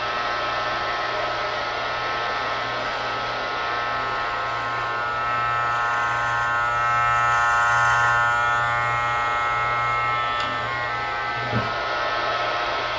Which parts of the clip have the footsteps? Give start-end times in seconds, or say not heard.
not heard.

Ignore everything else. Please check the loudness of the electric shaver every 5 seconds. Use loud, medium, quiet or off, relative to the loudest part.
medium, loud, medium.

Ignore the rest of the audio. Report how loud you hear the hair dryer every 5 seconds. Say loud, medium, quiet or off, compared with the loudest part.
loud, medium, loud.